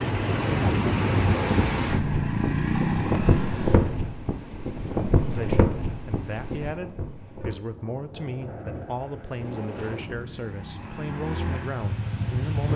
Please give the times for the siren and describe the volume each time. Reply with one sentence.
The siren can't be heard in this clip.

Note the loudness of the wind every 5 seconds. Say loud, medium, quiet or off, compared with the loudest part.
loud, medium, quiet.